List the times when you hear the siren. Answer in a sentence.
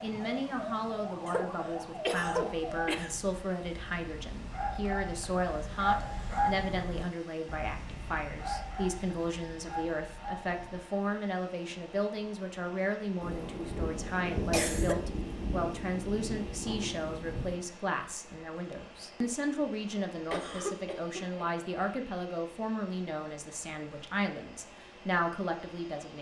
The siren can be heard from 0.0 to 2.9 s.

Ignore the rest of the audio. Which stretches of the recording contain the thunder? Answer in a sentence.
The thunder can be heard from 13.2 to 17.6 s.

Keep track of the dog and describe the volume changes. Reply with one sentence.
The volume of the dog goes up, then down.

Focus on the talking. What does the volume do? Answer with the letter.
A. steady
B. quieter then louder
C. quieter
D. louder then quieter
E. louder
A.